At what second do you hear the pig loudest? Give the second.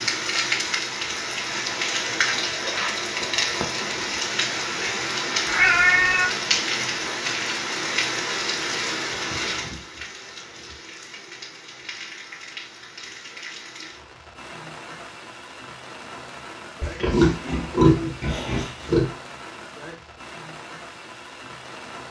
18 s.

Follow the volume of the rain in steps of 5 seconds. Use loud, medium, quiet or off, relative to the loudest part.
loud, loud, quiet, quiet, quiet.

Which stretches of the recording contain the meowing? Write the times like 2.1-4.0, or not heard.
5.5-6.3.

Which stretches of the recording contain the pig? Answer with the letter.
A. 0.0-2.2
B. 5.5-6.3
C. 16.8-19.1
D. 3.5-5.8
C.